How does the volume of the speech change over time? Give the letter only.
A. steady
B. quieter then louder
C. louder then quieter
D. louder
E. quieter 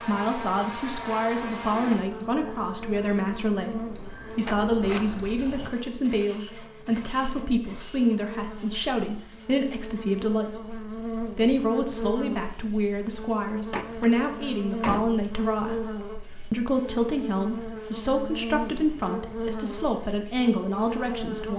A.